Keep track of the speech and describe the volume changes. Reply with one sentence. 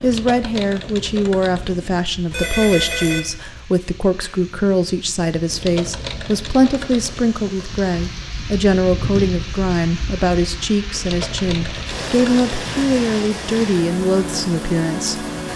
The loudness of the speech stays about the same.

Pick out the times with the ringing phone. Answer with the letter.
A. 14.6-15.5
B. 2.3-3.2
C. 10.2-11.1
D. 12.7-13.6
B.